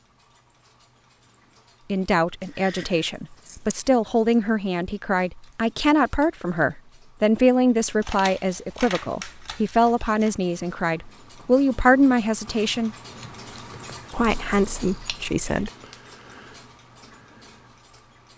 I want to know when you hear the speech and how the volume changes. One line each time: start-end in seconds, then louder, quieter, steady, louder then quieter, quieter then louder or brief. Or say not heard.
1.9-12.9 steady
14.1-15.7 brief.